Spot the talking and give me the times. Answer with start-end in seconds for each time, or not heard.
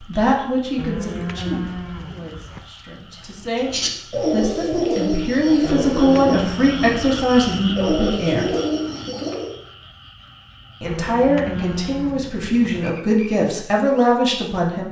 0.0-8.5, 10.8-14.8.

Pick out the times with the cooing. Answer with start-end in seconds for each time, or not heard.
3.5-9.6.